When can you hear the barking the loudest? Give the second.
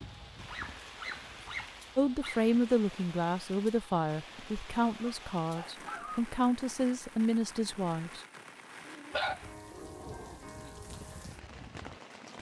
9 s.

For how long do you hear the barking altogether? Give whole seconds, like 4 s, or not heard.
5 s.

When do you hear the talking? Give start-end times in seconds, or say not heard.
1.9-8.2.